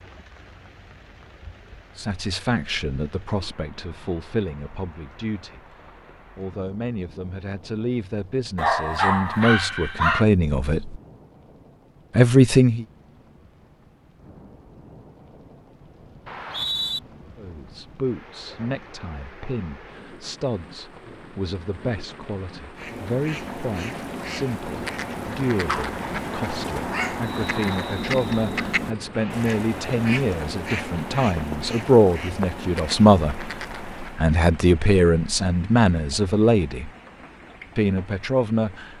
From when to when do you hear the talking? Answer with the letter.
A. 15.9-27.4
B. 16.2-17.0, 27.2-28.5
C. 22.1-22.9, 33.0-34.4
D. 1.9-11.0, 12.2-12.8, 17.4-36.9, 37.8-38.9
D.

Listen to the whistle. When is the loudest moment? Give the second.
17 s.